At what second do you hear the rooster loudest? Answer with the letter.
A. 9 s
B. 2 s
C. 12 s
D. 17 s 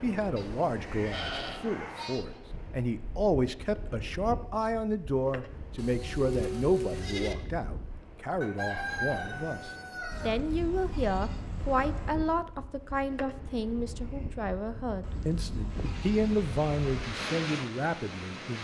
A.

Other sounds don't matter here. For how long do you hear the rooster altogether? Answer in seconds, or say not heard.
2 s.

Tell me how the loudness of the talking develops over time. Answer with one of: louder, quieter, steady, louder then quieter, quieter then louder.
steady.